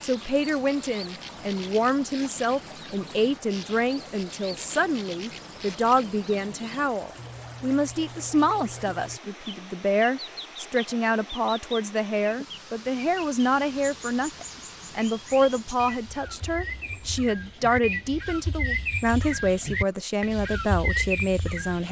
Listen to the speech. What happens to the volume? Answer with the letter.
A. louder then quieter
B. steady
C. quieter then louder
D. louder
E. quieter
B.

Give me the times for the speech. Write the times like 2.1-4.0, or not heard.
0.0-21.8.